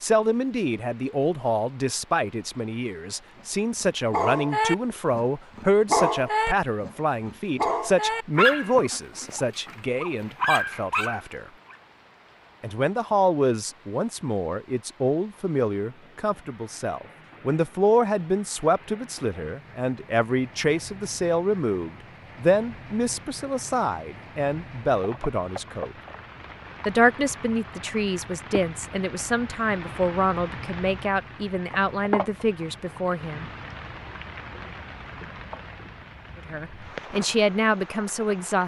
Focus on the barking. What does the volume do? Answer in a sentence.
The loudness of the barking goes down, then up.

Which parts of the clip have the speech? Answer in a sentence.
You can hear the speech from 0.0 to 11.5 s, from 12.6 to 25.9 s, from 26.9 to 33.5 s and from 36.5 to 38.6 s.